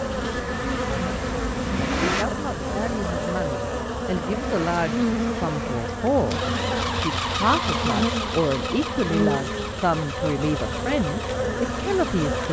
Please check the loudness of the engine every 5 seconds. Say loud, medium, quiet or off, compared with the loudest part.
loud, loud, medium.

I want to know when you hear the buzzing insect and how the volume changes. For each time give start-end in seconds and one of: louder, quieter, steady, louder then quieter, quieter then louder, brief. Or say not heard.
0.0-12.4 steady.